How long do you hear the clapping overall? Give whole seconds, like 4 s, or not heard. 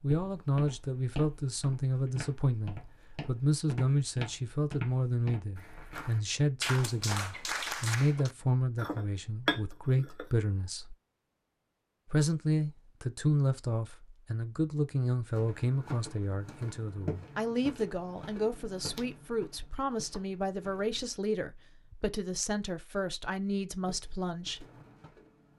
2 s.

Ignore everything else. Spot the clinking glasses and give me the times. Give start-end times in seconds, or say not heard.
8.8-10.2.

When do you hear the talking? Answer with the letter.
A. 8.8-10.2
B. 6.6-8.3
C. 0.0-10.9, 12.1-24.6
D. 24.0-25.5
C.